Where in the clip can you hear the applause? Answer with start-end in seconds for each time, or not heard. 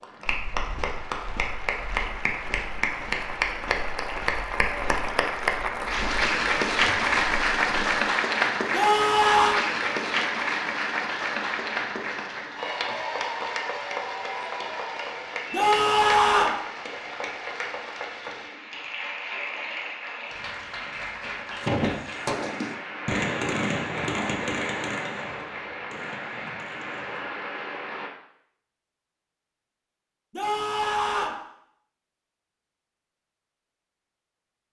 0.0-28.1.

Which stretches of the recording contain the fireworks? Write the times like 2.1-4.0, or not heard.
21.6-27.2.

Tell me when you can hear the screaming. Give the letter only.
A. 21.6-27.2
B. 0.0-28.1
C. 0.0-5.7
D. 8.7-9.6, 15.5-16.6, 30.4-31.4
D.